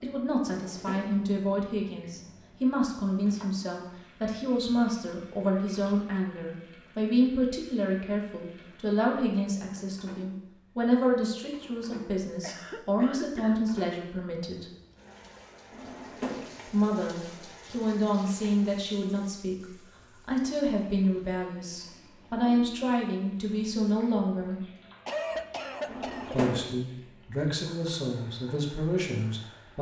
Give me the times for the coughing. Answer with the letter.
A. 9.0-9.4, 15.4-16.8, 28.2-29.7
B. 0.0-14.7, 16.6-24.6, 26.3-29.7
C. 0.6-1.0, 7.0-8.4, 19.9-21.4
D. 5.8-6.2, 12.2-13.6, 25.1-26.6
D.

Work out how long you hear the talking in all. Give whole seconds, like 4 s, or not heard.
26 s.